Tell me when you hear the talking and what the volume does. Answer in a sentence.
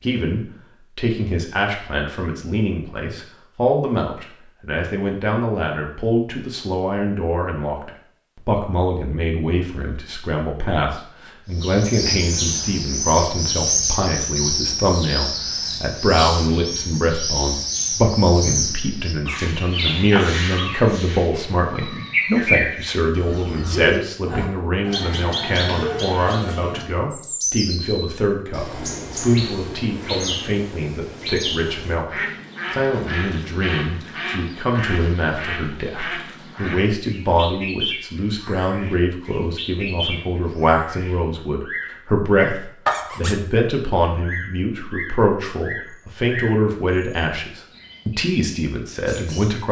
You can hear the talking from 0.0 to 49.6 s, at a steady volume.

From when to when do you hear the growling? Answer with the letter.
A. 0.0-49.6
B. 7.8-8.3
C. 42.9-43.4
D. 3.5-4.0
C.